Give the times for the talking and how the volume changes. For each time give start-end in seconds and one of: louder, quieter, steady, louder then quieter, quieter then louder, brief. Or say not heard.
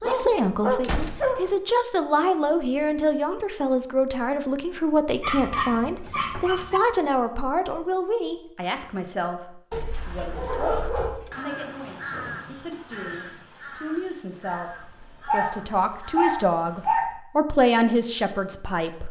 0.0-19.0 quieter then louder.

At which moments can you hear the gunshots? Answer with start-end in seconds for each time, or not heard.
0.8-1.5.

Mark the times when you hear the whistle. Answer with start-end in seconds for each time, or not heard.
not heard.